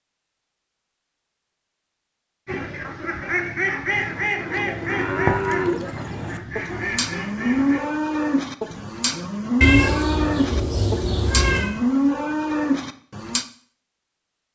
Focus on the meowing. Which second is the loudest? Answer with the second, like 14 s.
10 s.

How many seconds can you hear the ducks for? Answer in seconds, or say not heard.
5 s.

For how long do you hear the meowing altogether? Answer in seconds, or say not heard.
2 s.